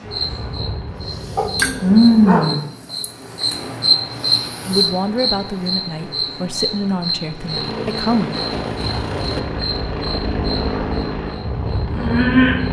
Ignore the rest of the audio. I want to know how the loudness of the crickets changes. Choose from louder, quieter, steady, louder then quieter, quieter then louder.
quieter.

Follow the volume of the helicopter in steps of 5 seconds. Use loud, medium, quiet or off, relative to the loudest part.
medium, loud, loud.